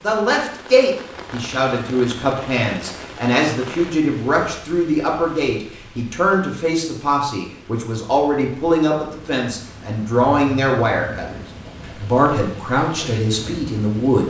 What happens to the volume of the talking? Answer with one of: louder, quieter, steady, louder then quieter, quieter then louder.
steady.